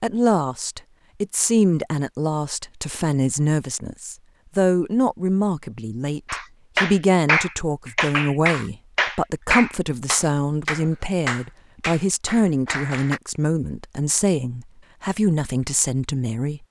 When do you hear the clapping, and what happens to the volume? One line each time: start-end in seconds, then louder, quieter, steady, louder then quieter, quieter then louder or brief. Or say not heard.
6.2-13.2 quieter.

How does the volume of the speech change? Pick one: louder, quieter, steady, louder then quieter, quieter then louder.
steady.